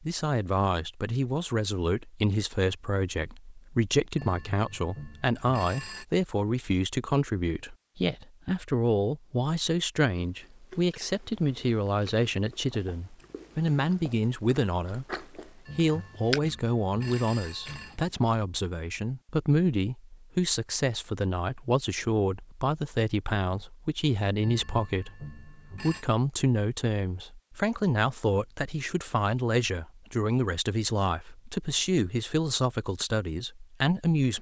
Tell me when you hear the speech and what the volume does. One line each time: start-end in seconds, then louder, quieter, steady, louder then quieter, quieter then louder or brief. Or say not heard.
0.0-34.3 steady.